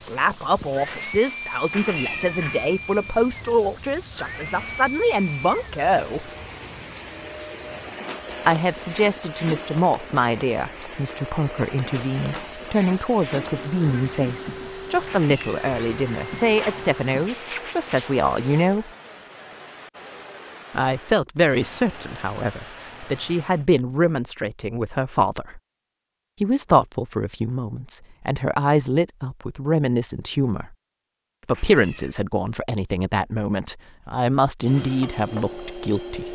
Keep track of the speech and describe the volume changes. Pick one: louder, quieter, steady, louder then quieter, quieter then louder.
steady.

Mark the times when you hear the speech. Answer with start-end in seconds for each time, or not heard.
0.0-6.3, 8.4-18.9, 20.7-25.6, 26.4-30.8, 31.4-36.3.